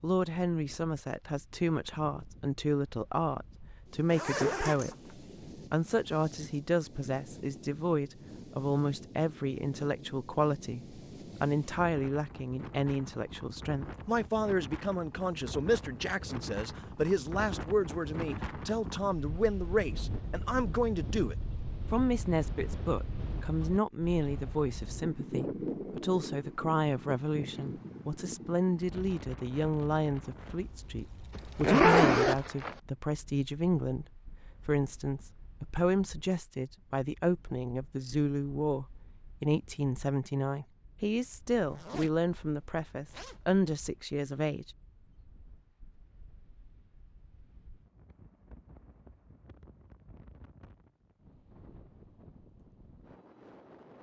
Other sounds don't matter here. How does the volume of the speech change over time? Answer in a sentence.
The volume of the speech stays about the same.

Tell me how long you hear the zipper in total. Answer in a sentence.
You can hear the zipper for 4 seconds altogether.